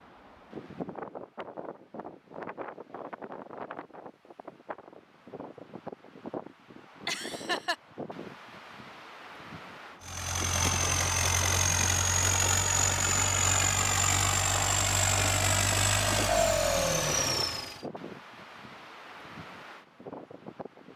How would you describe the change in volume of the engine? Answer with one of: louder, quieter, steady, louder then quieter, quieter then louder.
steady.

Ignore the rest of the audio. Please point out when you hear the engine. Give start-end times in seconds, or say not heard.
10.0-17.9.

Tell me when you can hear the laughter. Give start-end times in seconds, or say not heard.
7.0-7.8.